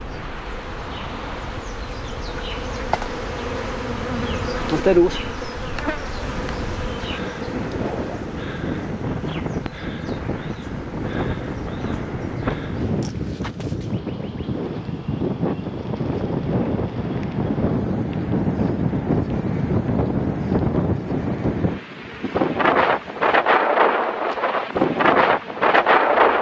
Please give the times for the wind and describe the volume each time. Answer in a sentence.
The wind can be heard from 0.0 to 26.3 s, getting louder.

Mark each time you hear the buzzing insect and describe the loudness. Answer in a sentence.
You can hear the buzzing insect from 0.0 to 26.3 s, getting quieter.